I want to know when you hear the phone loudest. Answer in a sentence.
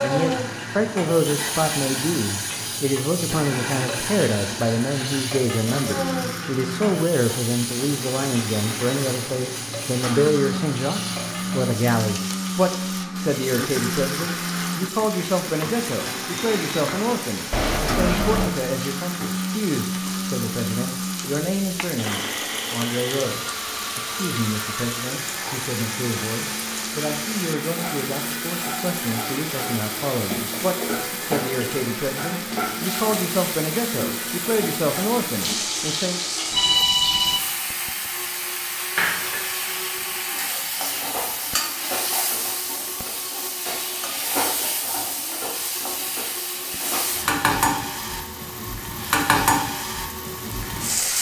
The volume of the phone peaks at 37 seconds.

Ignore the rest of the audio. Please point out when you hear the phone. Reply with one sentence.
The phone can be heard from 17.5 to 18.6 s and from 36.5 to 37.4 s.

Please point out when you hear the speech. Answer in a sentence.
You can hear the speech from 0.0 to 36.2 s.